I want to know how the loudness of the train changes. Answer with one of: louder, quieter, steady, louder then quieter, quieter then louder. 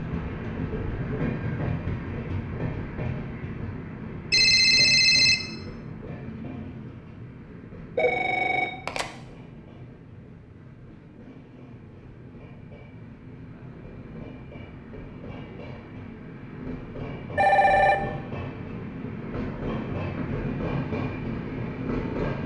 quieter then louder.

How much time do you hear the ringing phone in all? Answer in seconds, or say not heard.
3 s.